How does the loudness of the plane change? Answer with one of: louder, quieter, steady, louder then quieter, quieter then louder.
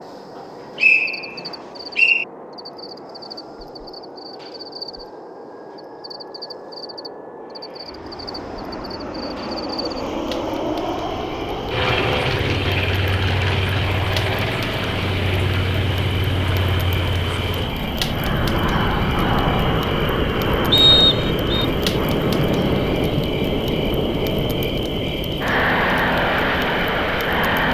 louder.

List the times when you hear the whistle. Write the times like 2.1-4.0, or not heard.
0.8-2.2, 20.7-21.6.